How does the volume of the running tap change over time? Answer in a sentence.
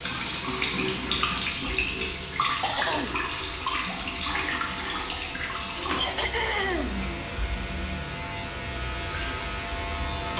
The volume of the running tap goes down.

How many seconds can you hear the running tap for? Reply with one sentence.
You can hear the running tap for 10 seconds altogether.